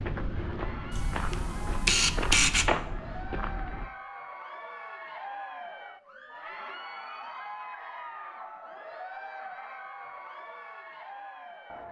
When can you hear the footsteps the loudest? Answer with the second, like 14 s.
3 s.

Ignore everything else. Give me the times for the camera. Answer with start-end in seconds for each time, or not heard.
0.9-2.7.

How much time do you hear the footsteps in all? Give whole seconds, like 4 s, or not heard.
4 s.